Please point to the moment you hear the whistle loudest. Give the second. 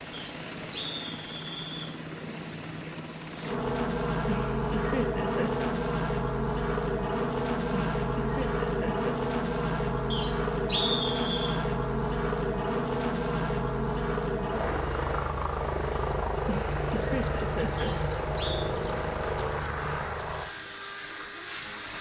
11 s.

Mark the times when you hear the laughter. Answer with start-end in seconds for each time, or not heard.
4.2-5.7, 7.7-9.1, 16.4-17.9.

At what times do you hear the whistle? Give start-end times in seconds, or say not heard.
0.1-1.9, 10.1-11.6, 17.8-18.6.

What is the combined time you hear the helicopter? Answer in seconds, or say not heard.
22 s.